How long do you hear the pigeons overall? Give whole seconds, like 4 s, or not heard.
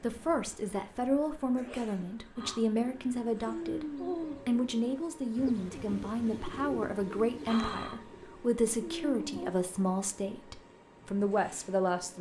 7 s.